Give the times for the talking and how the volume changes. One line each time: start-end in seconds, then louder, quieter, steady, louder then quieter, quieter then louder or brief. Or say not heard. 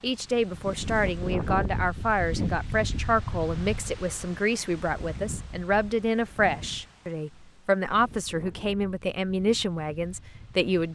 0.0-10.9 steady.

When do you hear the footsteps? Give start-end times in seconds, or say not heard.
not heard.